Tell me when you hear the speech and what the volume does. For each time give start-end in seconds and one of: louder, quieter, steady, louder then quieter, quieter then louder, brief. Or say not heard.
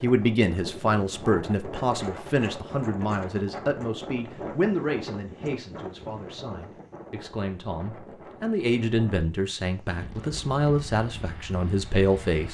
0.0-12.5 quieter then louder.